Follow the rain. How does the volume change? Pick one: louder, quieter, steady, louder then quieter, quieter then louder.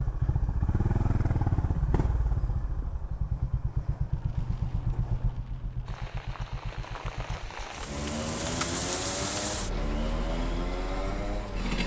louder then quieter.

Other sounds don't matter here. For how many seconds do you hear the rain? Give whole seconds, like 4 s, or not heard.
8 s.